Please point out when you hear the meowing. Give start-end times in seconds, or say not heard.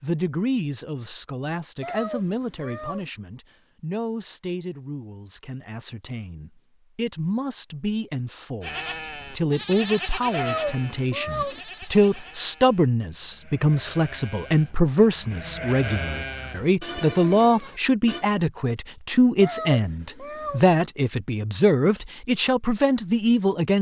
1.8-3.1, 10.3-11.6, 19.4-20.7.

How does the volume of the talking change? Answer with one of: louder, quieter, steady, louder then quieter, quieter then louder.
louder.